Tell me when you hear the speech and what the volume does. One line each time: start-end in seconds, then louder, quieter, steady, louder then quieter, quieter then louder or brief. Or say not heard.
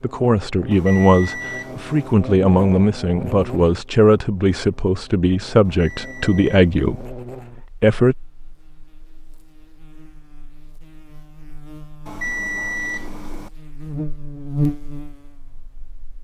0.0-8.2 steady.